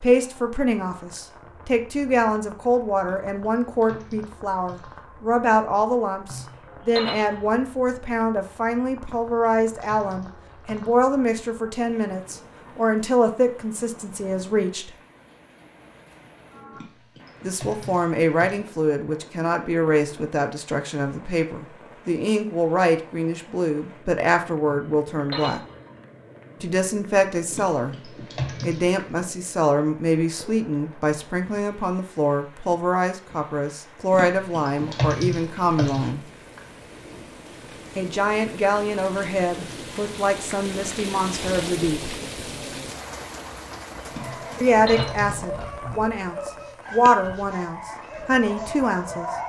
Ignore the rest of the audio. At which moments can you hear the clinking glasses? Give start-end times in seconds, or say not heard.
6.3-7.4, 24.6-25.8, 44.2-45.3.